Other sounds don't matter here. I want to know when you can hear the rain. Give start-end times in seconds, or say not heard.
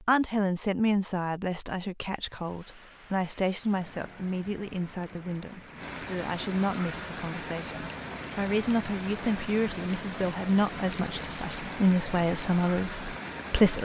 2.2-13.8.